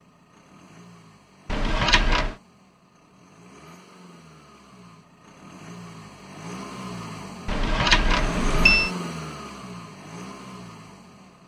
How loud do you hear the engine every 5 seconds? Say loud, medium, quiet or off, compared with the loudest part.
quiet, loud, medium.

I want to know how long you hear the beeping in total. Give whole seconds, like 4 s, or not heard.
2 s.